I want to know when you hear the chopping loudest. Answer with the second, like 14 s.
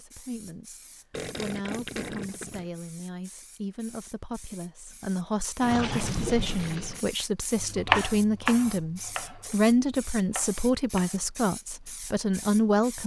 8 s.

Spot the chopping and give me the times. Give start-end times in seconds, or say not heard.
7.6-11.2.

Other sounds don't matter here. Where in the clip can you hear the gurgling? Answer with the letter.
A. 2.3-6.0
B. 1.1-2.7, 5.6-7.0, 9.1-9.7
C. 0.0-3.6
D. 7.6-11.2
B.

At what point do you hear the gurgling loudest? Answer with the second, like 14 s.
6 s.